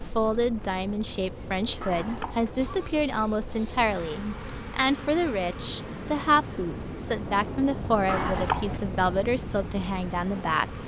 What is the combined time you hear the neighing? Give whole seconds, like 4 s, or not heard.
2 s.